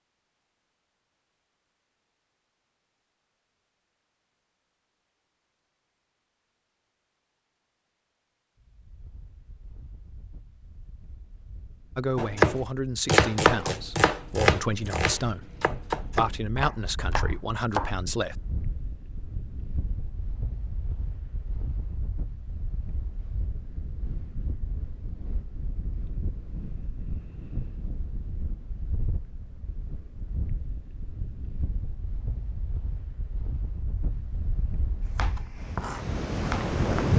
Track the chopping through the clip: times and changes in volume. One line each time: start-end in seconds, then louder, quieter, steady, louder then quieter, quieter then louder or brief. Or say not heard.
12.2-17.9 quieter
35.0-37.1 brief.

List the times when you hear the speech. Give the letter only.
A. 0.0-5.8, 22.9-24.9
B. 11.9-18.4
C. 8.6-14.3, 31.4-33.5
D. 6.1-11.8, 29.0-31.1
B.